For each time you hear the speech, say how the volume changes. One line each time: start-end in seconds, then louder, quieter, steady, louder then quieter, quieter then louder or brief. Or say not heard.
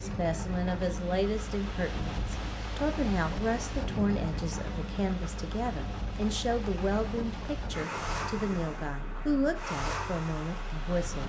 0.0-11.2 steady.